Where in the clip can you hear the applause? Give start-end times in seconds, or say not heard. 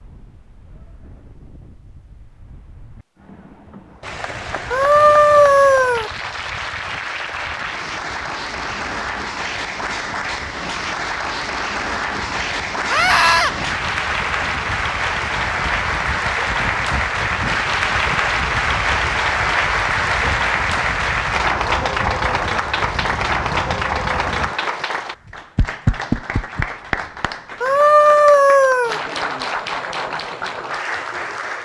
4.0-31.6.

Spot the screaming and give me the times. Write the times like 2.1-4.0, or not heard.
4.7-6.1, 12.8-13.6, 27.6-29.0.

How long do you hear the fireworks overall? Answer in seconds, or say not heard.
not heard.